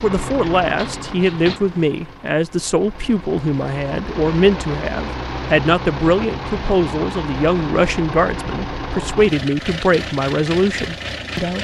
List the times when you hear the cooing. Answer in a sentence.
The cooing can't be heard in this clip.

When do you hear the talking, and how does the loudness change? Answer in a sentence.
The talking can be heard from 0.0 to 11.6 s, at a steady volume.